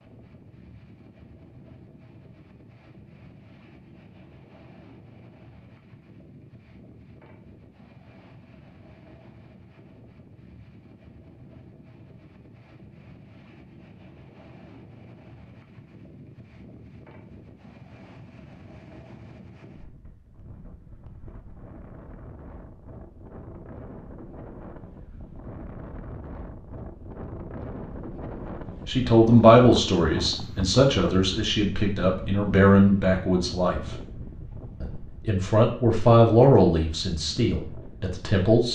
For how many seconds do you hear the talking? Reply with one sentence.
You can hear the talking for 9 seconds altogether.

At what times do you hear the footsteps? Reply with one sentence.
You can't hear the footsteps here.